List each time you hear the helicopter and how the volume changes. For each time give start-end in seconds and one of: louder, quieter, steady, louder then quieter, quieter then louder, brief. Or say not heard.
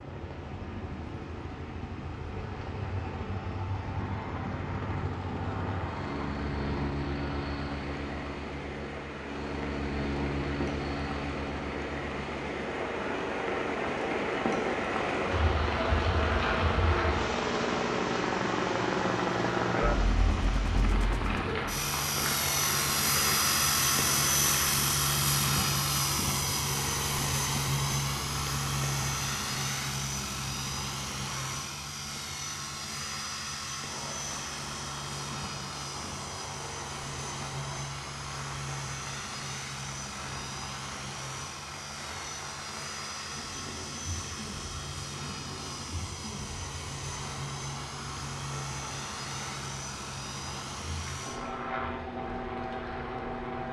0.0-53.6 louder then quieter.